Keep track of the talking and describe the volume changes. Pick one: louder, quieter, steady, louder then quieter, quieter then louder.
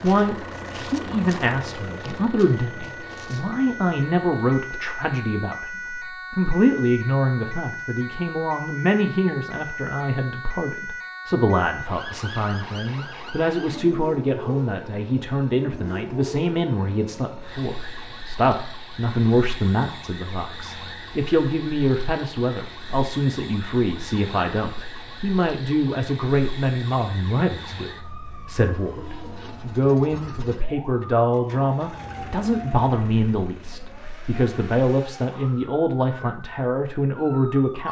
steady.